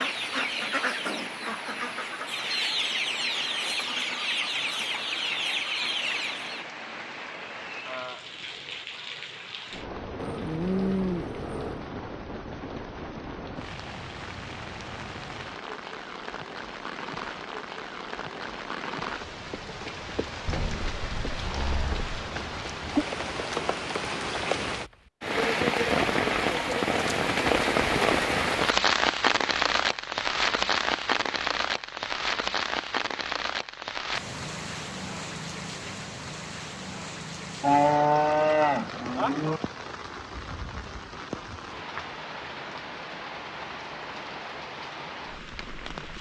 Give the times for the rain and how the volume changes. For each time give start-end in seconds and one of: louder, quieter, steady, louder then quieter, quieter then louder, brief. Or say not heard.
0.0-46.1 louder then quieter.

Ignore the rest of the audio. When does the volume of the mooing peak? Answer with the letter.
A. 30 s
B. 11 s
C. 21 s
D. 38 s
D.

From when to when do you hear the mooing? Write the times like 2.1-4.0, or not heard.
10.2-11.9, 20.4-22.1, 37.6-39.6.